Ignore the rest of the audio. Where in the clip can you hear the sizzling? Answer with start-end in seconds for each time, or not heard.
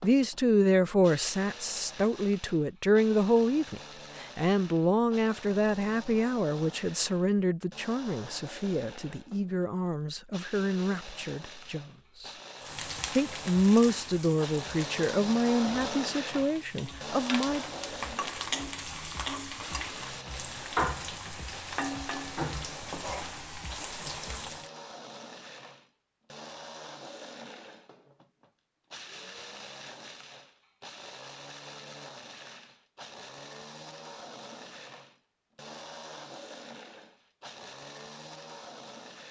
12.6-24.7.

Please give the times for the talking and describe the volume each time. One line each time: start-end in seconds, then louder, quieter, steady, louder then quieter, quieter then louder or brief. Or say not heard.
0.0-12.3 quieter
13.2-17.6 quieter.